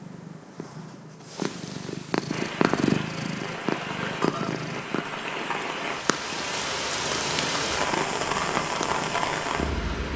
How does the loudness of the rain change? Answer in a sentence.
The volume of the rain goes up.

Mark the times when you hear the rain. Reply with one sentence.
The rain can be heard from 2.2 to 10.1 s.